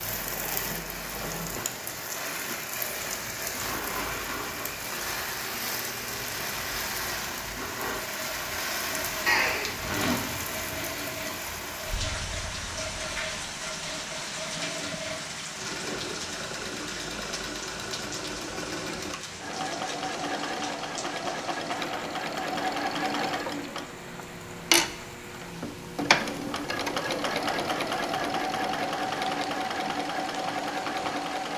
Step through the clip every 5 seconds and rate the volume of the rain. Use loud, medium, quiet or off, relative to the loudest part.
loud, loud, loud, medium, medium, medium, medium.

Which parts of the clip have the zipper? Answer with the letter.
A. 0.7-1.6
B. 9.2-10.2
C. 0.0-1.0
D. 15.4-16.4
B.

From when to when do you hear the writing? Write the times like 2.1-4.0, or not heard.
not heard.